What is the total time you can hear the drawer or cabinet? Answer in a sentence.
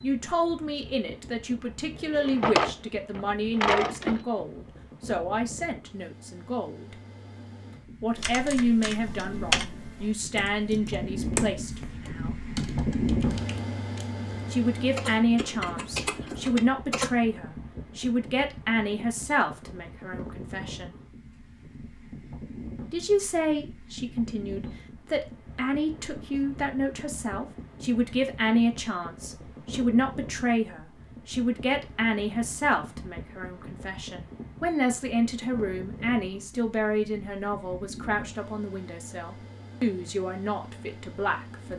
You can hear the drawer or cabinet for 2 seconds altogether.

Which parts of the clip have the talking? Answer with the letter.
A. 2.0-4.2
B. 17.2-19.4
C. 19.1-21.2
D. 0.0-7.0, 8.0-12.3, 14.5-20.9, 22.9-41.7
D.